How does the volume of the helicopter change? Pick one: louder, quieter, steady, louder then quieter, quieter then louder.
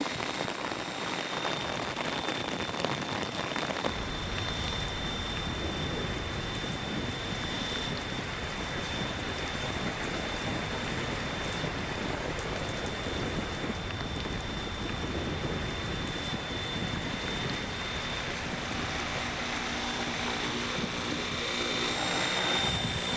louder.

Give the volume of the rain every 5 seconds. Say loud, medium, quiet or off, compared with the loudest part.
loud, loud, loud, loud, medium.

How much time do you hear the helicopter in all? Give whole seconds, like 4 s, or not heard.
23 s.